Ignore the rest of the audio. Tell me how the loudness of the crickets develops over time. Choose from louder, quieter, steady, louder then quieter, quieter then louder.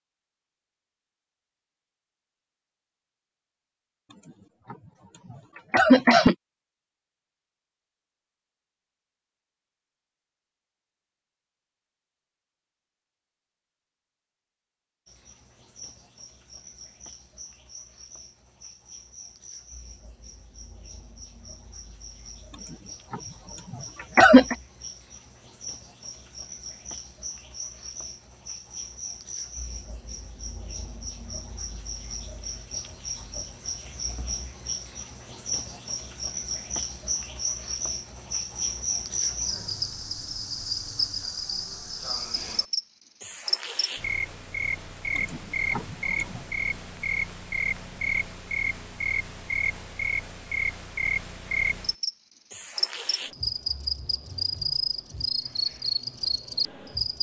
louder.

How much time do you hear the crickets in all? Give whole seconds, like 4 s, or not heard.
42 s.